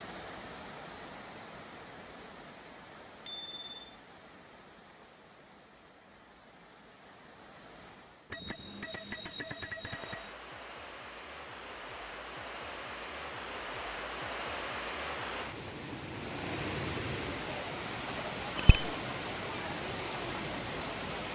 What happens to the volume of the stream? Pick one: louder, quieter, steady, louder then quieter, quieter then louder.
quieter then louder.